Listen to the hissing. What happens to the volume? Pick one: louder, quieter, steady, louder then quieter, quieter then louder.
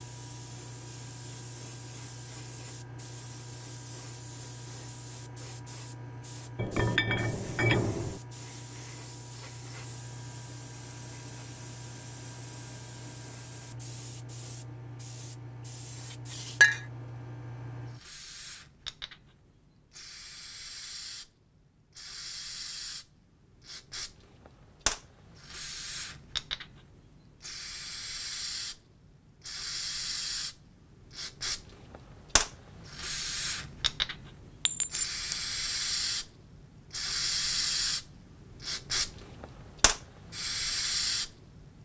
louder.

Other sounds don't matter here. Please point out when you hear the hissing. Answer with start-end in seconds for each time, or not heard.
0.0-41.8.